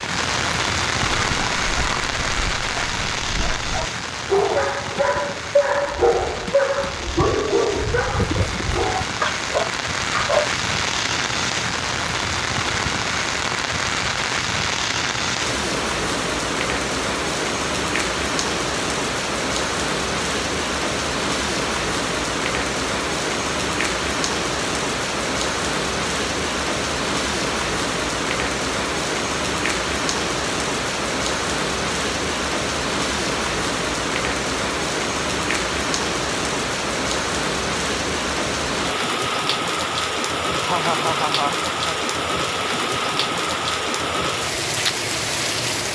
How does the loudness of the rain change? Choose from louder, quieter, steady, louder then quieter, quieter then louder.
steady.